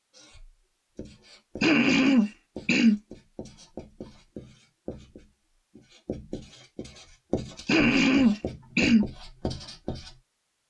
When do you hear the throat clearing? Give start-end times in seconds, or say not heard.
1.6-3.0, 7.7-9.1.